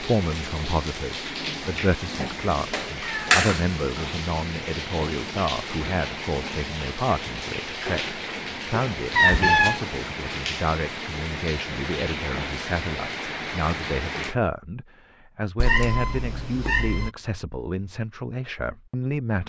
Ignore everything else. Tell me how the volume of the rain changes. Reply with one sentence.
The volume of the rain stays about the same.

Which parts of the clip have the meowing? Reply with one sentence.
You can hear the meowing from 2.2 to 3.6 s, from 9.1 to 9.8 s and from 15.6 to 17.1 s.